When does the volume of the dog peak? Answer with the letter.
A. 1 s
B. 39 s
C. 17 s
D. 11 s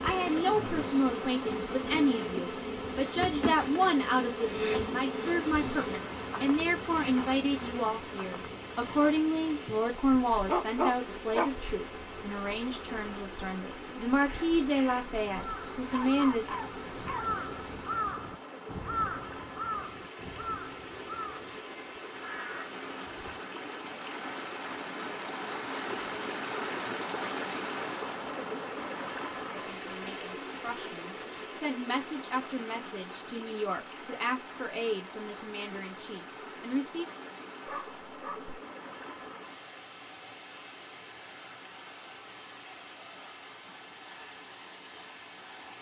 D.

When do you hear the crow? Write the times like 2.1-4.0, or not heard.
14.2-23.4.